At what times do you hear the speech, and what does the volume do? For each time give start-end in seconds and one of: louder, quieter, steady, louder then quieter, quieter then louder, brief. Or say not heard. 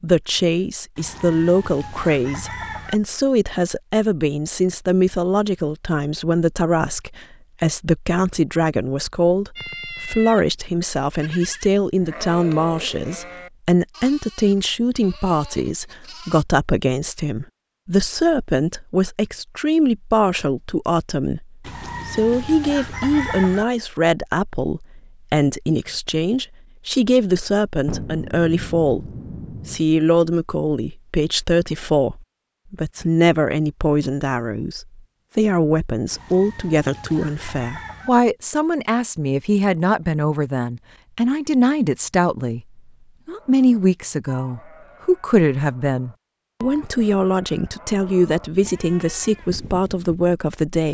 0.0-50.8 steady.